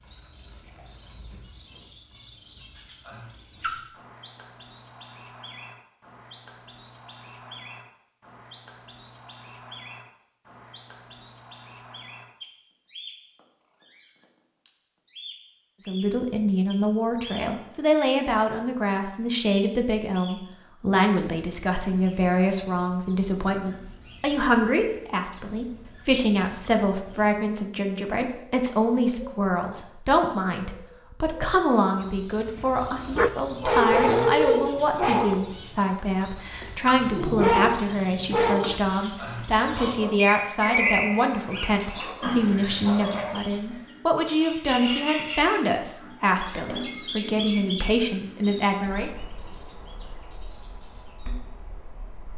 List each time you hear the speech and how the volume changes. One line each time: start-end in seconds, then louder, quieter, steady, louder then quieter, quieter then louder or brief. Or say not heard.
15.8-49.1 steady.